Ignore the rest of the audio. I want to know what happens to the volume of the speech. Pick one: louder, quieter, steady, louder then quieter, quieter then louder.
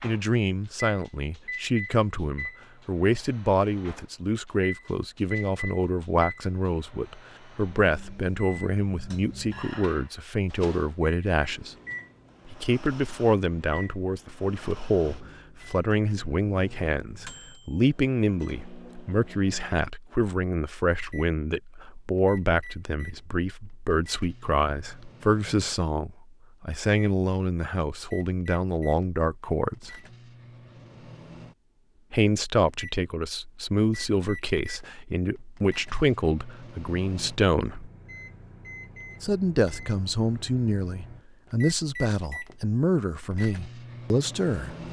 steady.